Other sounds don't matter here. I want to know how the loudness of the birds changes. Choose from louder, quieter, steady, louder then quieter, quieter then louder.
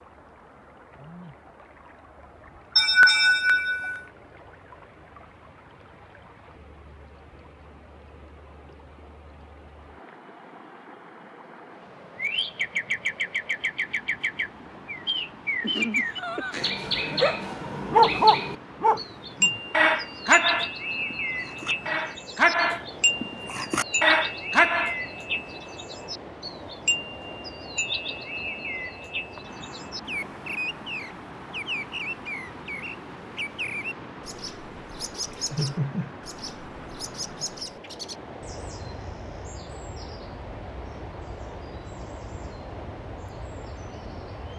quieter.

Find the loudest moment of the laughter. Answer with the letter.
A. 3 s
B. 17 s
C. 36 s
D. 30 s
A.